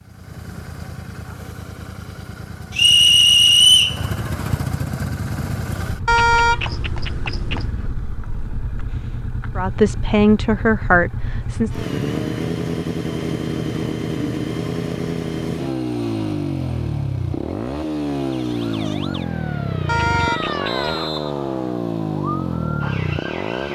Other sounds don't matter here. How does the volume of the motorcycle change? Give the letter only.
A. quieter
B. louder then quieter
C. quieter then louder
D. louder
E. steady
D.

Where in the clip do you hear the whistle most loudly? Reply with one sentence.
The volume of the whistle peaks at 4 seconds.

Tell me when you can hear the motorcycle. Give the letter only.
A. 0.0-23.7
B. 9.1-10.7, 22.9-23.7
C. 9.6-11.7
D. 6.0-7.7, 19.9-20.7
A.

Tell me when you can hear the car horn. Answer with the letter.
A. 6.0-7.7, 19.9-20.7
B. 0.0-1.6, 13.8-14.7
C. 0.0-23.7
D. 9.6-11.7
A.